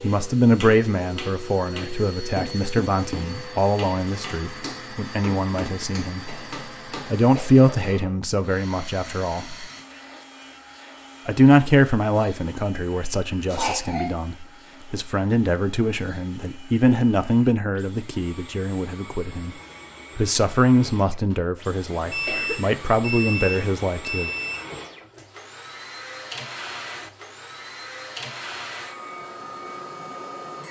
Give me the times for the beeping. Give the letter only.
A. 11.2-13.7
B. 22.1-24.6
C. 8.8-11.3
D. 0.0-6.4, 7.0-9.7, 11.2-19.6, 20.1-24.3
B.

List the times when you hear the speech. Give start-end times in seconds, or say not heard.
0.0-6.4, 7.0-9.7, 11.2-19.6, 20.1-24.3.